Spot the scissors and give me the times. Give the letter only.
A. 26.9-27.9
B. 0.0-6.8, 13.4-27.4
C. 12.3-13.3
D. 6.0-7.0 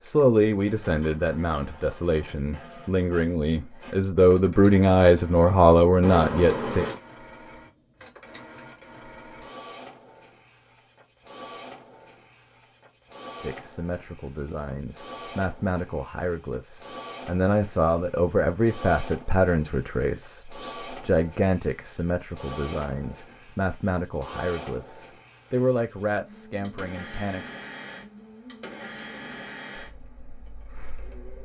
D.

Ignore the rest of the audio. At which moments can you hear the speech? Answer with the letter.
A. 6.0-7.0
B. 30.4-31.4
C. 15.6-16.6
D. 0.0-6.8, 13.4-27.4
D.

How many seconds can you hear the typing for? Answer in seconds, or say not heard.
not heard.